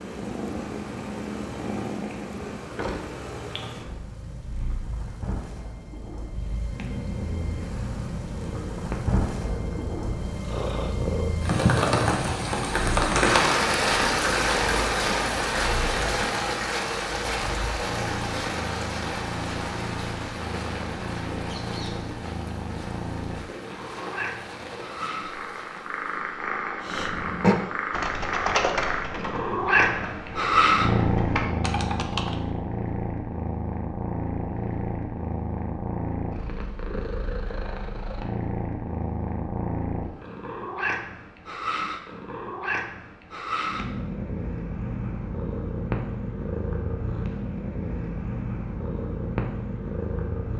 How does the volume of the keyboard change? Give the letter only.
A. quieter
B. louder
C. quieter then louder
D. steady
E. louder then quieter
C.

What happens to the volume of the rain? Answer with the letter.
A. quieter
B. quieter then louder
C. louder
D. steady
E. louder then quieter
E.